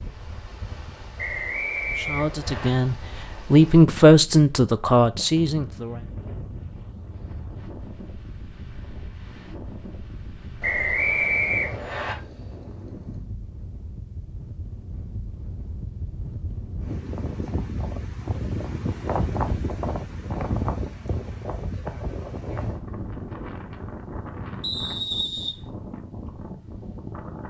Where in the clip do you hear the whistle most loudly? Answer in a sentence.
The volume of the whistle peaks at 11 seconds.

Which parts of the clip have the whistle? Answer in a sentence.
You can hear the whistle from 1.1 to 2.7 s, from 10.6 to 12.2 s and from 24.6 to 25.6 s.